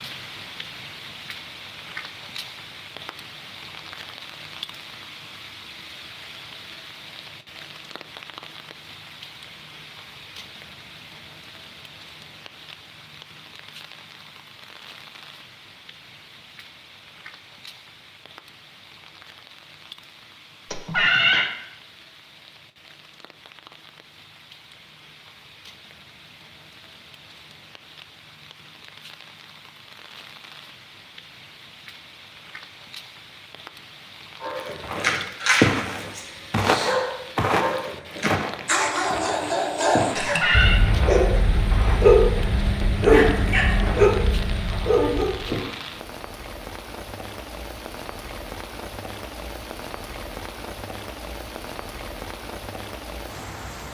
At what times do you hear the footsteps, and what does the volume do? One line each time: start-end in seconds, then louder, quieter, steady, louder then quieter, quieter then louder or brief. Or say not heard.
34.8-45.9 quieter.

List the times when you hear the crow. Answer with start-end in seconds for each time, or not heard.
not heard.